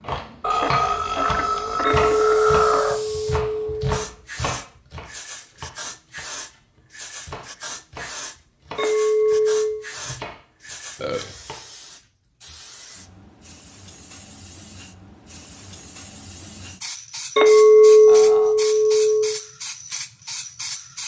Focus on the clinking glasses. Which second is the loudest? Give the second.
18 s.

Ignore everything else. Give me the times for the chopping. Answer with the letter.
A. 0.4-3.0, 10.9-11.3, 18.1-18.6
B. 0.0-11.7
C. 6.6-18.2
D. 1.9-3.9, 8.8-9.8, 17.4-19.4
B.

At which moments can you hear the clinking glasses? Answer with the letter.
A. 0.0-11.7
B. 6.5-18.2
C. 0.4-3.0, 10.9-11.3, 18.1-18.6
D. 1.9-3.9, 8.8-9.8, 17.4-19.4
D.